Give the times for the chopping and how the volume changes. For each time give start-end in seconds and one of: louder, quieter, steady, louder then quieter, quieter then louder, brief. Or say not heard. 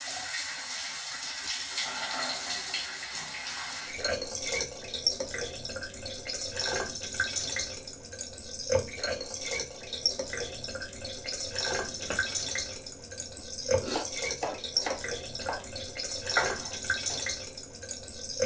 11.9-12.3 brief
13.2-17.2 quieter then louder.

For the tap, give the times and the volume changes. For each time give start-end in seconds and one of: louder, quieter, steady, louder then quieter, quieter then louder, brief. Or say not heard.
0.0-18.4 steady.